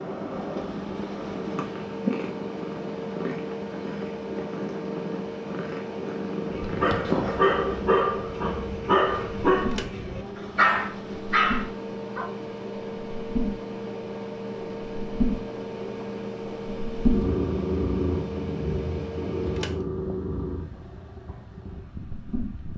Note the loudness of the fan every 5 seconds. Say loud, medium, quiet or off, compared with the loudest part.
loud, loud, loud, loud, medium.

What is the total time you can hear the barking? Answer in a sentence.
You can hear the barking for 6 seconds altogether.